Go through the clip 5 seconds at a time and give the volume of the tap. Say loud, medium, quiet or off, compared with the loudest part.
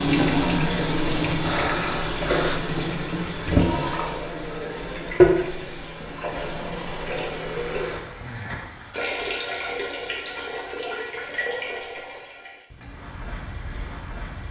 loud, loud, medium.